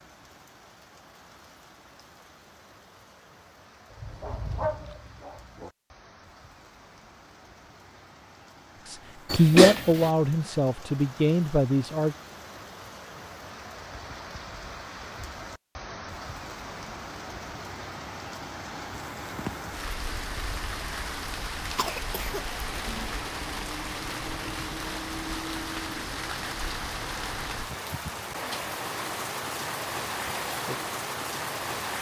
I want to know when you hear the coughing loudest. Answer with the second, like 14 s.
10 s.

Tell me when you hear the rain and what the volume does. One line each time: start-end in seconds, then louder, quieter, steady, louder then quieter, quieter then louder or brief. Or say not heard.
0.0-31.9 louder.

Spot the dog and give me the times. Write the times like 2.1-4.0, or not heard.
3.9-5.7.